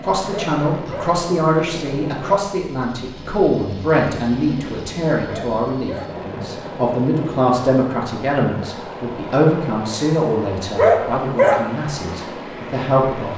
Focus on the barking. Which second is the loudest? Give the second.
11 s.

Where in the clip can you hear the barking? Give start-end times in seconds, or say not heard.
0.2-1.1, 5.2-6.1, 10.7-11.6.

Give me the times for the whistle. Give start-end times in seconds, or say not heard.
not heard.